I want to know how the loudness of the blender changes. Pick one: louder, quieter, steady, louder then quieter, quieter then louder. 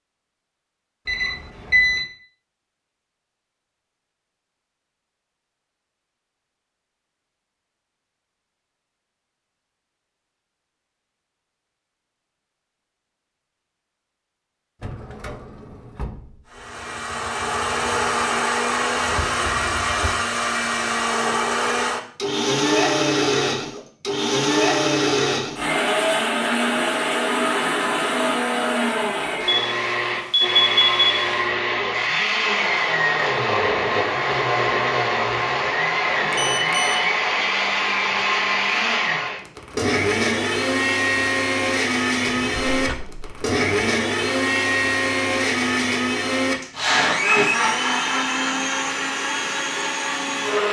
steady.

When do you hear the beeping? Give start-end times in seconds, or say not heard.
1.1-2.0, 29.4-31.4, 36.3-37.0.